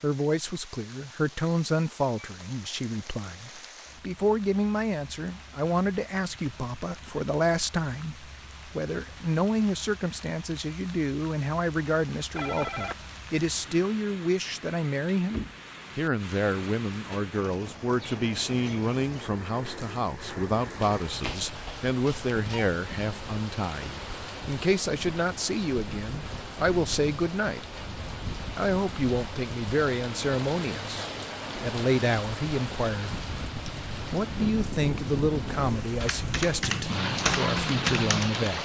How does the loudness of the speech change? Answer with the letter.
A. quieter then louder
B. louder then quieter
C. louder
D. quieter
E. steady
E.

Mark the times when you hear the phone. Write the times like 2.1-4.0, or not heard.
12.3-13.0, 20.8-22.7.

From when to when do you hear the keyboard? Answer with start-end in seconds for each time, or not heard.
36.0-38.5.